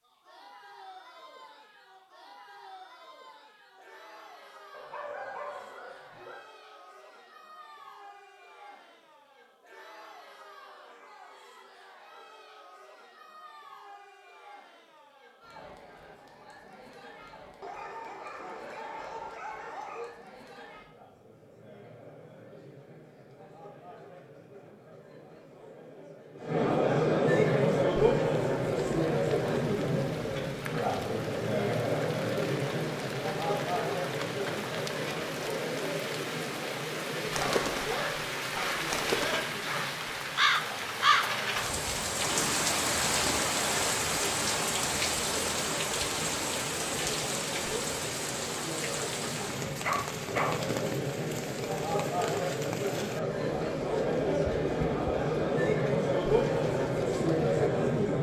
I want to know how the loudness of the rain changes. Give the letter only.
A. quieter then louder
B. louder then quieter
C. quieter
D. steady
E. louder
B.